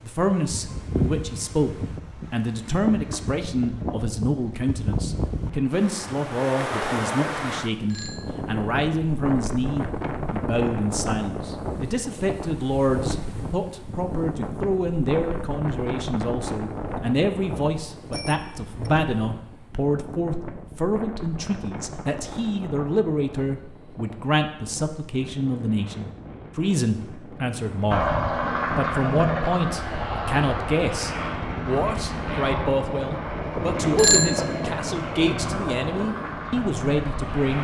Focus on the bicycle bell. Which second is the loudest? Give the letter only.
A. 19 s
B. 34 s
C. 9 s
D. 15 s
B.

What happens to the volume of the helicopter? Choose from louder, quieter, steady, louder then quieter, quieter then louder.
quieter.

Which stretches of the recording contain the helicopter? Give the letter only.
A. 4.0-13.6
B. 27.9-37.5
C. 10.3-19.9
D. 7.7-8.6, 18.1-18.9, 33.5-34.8
B.